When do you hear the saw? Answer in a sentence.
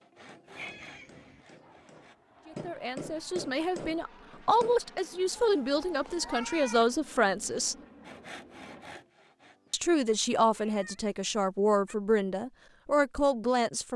You can hear the saw from 0.0 to 2.1 s and from 8.1 to 9.8 s.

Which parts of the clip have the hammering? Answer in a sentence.
The hammering can be heard from 0.0 to 4.8 s.